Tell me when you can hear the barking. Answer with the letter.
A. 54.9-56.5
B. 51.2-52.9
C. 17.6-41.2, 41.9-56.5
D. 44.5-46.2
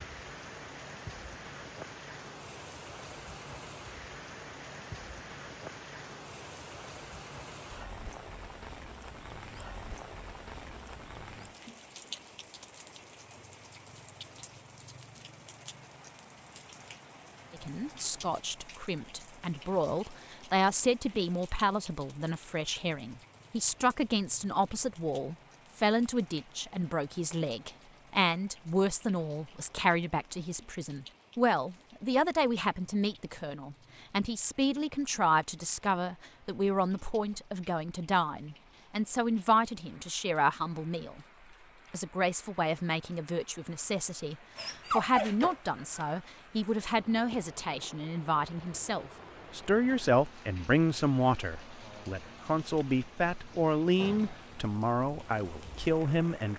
D.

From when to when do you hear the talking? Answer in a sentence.
The talking can be heard from 17.6 to 41.2 s and from 41.9 to 56.5 s.